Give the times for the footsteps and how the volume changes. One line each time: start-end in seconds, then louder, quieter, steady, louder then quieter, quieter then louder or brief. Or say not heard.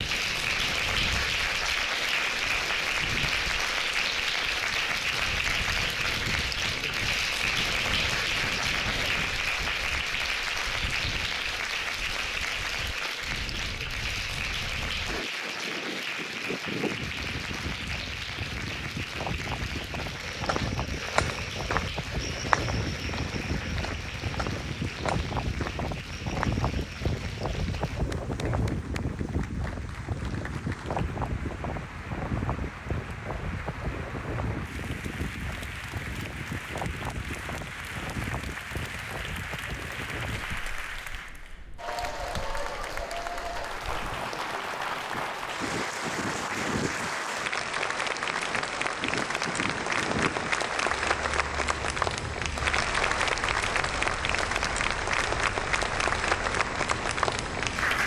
20.0-27.9 quieter.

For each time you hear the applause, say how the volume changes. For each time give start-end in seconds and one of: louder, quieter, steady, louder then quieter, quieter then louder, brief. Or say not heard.
0.0-58.0 quieter then louder.